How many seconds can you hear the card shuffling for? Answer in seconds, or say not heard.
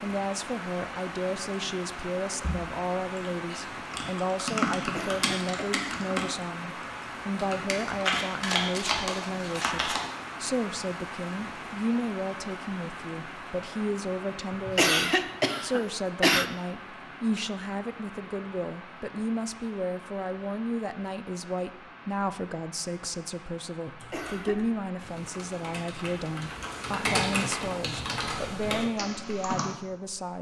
2 s.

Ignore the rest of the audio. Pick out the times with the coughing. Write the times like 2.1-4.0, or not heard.
4.8-5.8, 14.7-16.4, 24.0-24.6.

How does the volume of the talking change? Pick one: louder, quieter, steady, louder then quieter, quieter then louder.
steady.